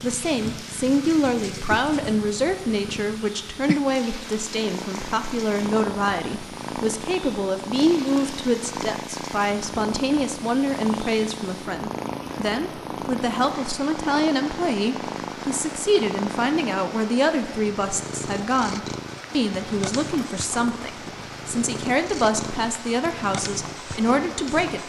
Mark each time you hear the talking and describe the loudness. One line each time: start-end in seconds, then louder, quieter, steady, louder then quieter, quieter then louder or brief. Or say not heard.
0.0-24.8 steady.